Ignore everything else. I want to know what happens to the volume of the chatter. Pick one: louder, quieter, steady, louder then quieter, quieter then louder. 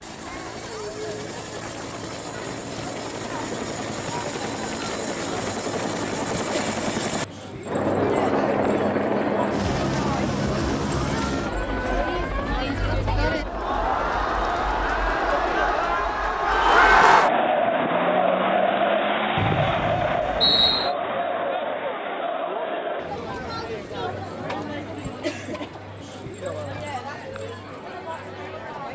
louder then quieter.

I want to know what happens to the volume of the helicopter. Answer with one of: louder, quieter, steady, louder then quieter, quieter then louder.
louder then quieter.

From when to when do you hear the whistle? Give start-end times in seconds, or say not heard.
19.4-20.9.